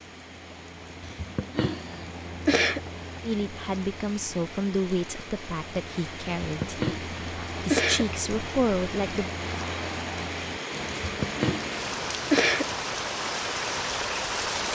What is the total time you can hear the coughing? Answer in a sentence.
The coughing can be heard for 5 seconds in total.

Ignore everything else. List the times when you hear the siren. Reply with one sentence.
The siren can't be heard in this clip.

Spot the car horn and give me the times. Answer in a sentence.
You can't hear the car horn here.